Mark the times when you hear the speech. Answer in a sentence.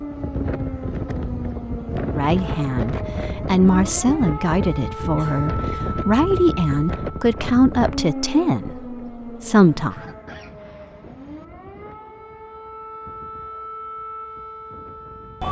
You can hear the speech from 2.0 to 10.1 s.